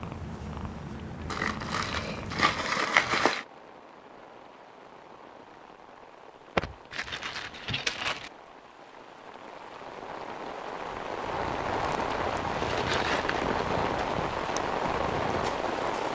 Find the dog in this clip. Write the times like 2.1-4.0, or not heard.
not heard.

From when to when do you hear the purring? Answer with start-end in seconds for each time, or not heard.
0.0-2.8, 11.3-16.0.